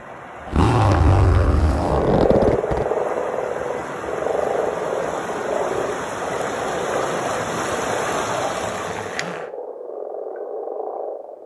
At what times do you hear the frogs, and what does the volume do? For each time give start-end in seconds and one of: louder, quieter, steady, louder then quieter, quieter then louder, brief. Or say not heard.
1.9-11.4 quieter.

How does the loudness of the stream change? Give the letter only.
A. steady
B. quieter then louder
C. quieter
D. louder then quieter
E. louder
E.